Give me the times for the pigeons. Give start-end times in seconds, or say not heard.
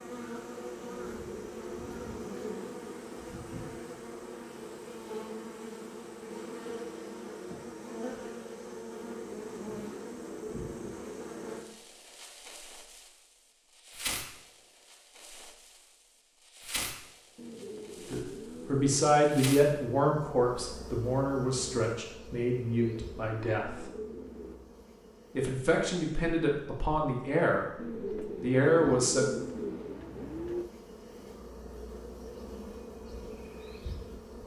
1.0-3.2, 9.0-11.6, 17.4-19.1, 22.8-24.6, 27.8-30.6.